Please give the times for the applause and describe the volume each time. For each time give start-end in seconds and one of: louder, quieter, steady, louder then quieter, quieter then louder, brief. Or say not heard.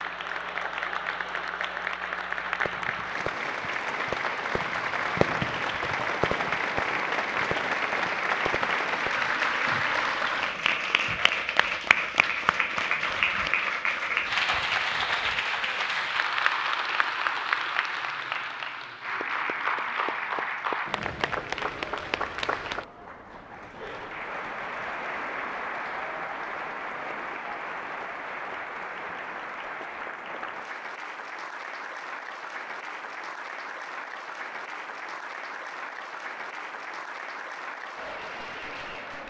0.0-39.2 quieter.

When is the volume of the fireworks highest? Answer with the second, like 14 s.
5 s.